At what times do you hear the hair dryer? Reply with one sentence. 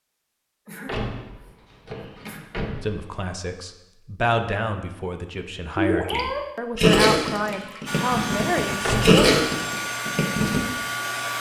You can hear the hair dryer from 7.8 to 11.3 s.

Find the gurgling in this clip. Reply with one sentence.
The gurgling can be heard from 5.8 to 10.6 s.